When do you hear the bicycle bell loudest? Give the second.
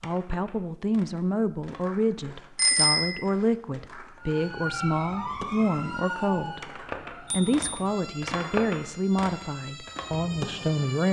3 s.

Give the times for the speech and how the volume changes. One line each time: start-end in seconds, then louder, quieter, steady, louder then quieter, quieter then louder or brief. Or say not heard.
0.0-11.0 steady.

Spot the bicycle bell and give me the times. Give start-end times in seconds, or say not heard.
2.5-3.2, 7.2-7.8.